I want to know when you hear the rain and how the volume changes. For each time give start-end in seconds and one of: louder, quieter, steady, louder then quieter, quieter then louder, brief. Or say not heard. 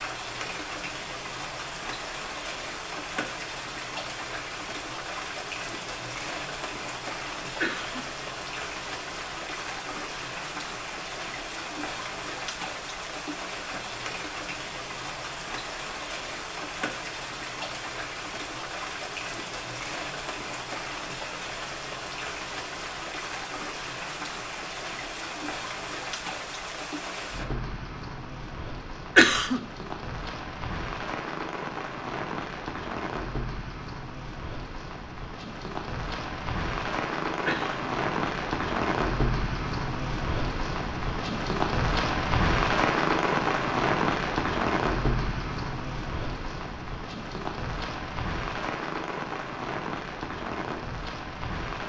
0.0-51.8 louder.